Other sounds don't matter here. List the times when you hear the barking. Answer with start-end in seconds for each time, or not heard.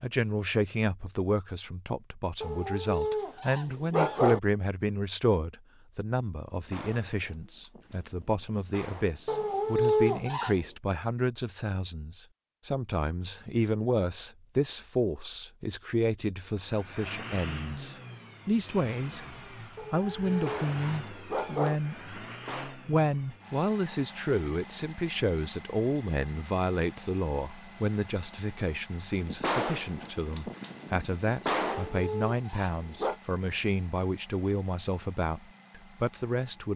2.4-4.4, 9.2-10.7, 19.8-21.8, 31.6-33.1.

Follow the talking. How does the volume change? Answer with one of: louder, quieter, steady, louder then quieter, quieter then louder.
steady.